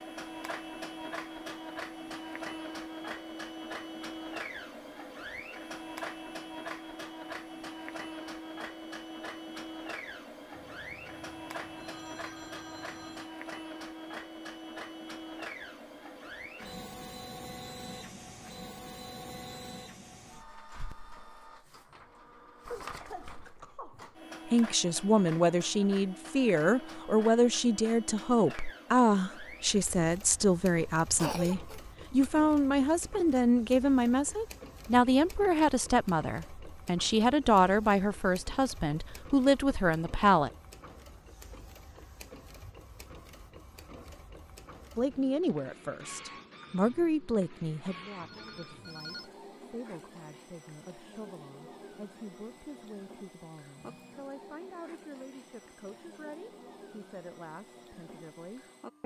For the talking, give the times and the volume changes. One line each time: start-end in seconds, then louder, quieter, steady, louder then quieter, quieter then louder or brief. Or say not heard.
24.4-40.5 steady
45.0-59.0 quieter.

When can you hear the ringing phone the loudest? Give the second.
49 s.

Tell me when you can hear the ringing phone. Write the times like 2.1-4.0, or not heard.
10.5-13.3, 48.2-49.3.